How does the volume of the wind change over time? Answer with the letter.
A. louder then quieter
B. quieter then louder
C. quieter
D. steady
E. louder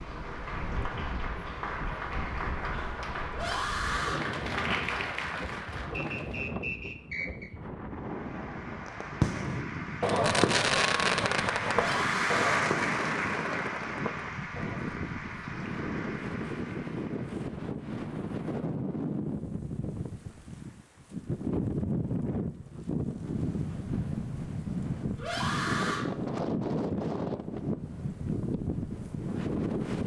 E.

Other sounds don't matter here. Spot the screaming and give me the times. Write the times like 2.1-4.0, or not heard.
3.3-4.2, 11.7-12.7, 25.1-26.1.